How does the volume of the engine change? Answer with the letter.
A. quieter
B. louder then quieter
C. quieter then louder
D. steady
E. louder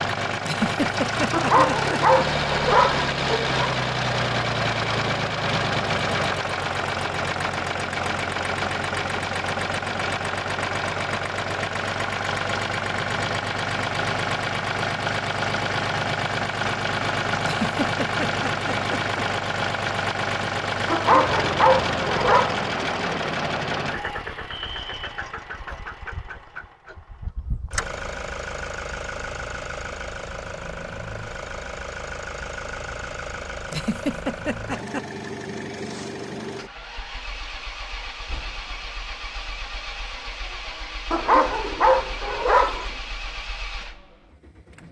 A.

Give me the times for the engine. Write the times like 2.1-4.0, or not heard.
0.0-44.8.